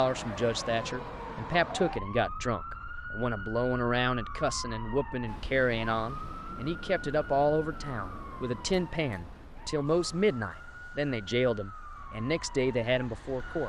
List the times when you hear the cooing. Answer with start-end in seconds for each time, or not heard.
not heard.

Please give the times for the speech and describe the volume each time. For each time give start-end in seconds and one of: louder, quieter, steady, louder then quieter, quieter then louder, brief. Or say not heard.
0.0-13.6 steady.